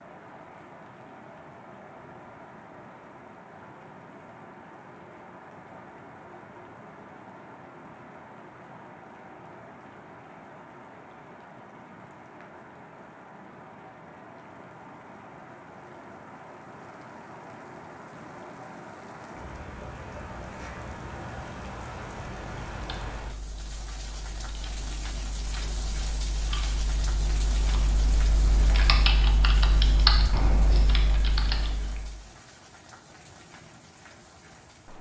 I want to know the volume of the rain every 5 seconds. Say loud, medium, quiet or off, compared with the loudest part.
medium, medium, medium, loud, loud, loud, medium.